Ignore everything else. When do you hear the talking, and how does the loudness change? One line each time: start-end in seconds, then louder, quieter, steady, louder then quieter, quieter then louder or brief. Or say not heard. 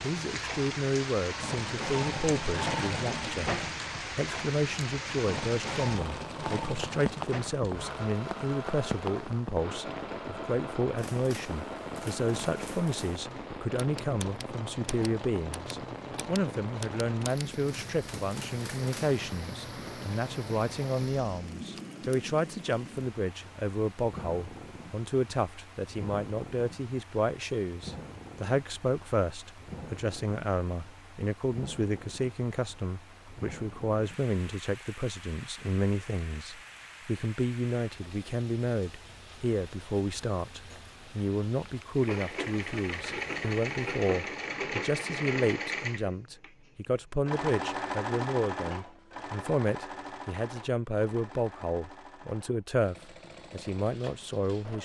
0.0-54.8 steady.